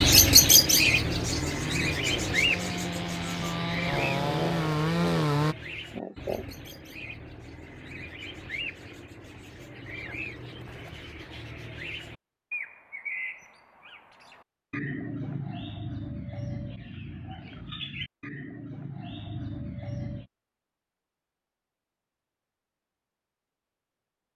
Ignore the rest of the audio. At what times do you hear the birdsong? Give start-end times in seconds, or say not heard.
0.0-20.2.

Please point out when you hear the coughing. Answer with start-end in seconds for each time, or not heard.
5.9-6.5.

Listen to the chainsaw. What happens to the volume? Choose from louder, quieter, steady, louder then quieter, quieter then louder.
louder.